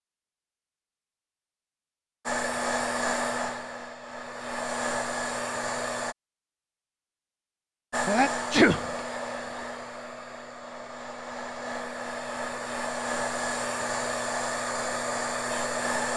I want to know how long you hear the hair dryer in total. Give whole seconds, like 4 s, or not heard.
12 s.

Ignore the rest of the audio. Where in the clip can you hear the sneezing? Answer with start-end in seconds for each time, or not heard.
8.1-8.9.